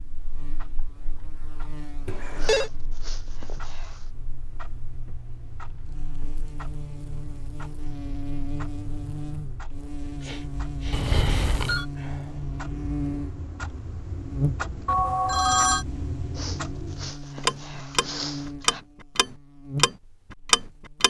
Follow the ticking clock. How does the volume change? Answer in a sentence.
The loudness of the ticking clock goes up.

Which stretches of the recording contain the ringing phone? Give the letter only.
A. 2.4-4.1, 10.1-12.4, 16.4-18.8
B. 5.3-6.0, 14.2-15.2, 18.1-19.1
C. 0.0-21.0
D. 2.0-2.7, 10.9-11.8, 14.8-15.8
D.